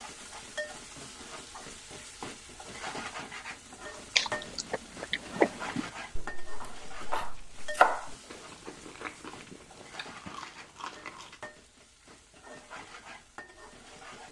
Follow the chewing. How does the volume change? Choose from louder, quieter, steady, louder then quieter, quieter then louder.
quieter then louder.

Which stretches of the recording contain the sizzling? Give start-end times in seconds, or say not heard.
0.0-14.2.